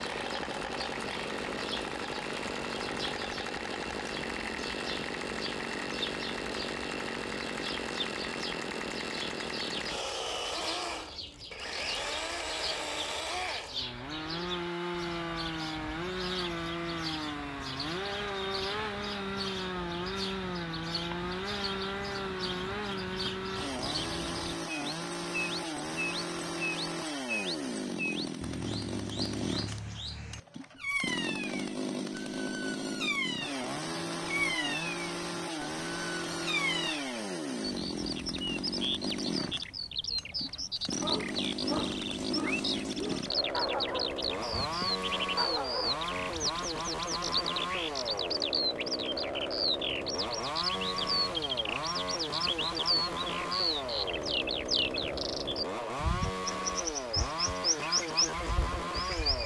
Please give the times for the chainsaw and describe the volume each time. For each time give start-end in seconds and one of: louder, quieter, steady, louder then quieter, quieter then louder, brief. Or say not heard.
0.0-59.4 steady.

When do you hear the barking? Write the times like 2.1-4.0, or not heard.
41.0-46.6.